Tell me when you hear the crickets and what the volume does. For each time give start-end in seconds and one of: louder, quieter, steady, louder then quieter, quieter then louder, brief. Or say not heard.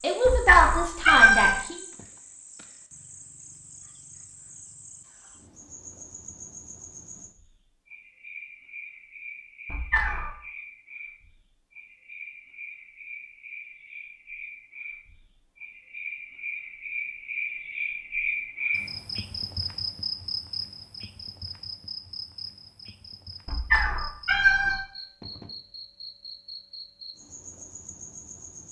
0.0-28.6 louder then quieter.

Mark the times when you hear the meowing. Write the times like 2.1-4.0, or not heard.
0.2-1.6, 9.7-10.3, 23.4-25.4.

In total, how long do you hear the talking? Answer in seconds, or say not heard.
2 s.